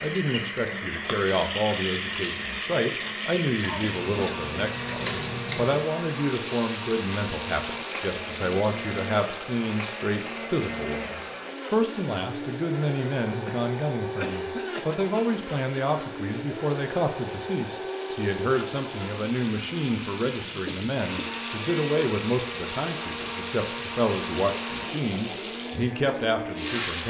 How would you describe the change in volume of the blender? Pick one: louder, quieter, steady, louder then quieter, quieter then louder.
steady.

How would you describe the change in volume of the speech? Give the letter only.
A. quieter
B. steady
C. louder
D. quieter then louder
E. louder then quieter
B.